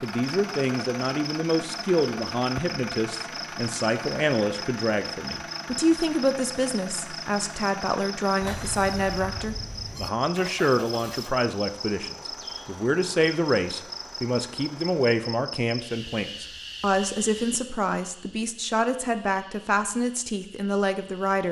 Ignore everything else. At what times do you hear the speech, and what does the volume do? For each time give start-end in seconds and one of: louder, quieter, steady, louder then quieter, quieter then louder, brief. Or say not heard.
0.0-21.4 steady.